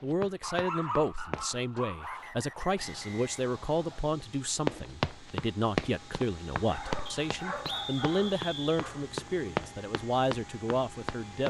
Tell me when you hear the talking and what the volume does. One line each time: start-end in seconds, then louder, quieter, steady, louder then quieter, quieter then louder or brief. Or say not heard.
0.0-11.4 steady.